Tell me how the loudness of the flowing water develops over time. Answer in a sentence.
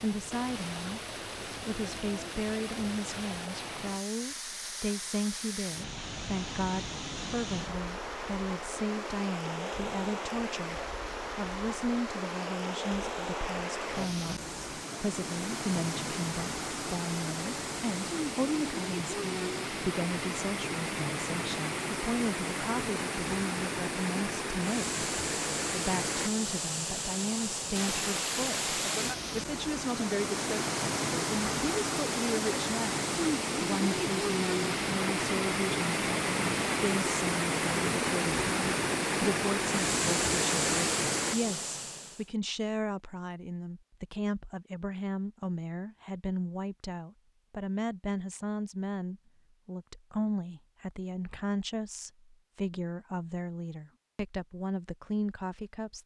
The loudness of the flowing water goes up.